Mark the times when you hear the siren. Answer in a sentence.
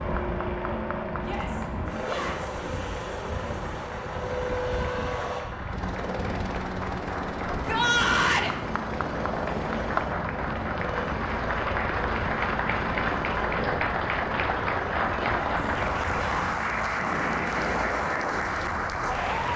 You can't hear the siren here.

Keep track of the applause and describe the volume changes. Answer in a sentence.
The volume of the applause goes up.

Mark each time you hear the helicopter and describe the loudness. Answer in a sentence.
The helicopter can be heard from 0.0 to 18.1 s, at a steady volume.